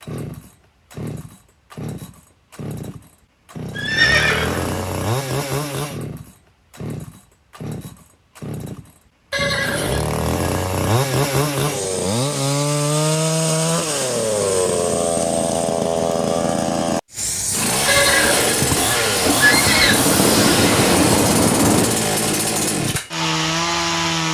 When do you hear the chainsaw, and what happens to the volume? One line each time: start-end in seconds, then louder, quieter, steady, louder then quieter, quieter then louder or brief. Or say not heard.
0.0-24.2 louder.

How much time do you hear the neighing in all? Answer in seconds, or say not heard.
4 s.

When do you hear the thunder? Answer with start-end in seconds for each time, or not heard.
19.2-22.1.